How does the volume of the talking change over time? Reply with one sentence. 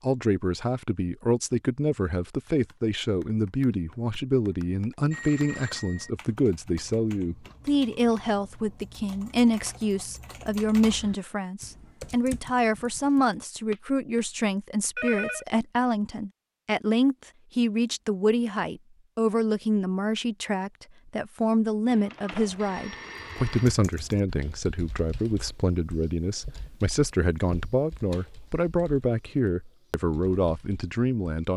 The loudness of the talking stays about the same.